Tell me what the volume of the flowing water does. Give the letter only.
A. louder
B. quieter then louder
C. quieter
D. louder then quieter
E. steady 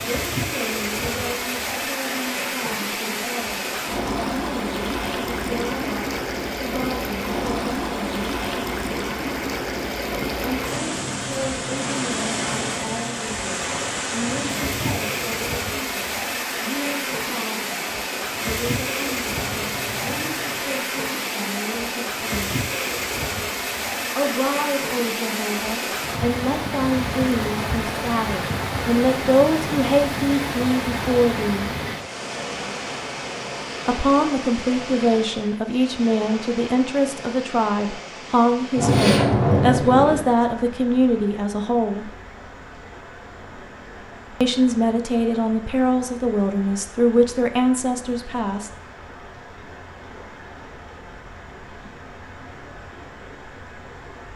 C.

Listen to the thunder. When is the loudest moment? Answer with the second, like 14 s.
39 s.